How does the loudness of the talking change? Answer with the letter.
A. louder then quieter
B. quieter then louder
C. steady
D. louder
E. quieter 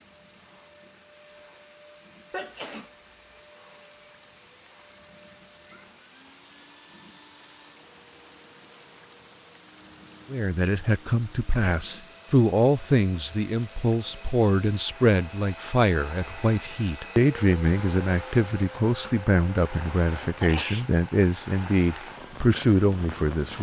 C.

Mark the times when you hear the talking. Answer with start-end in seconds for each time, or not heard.
10.3-23.5.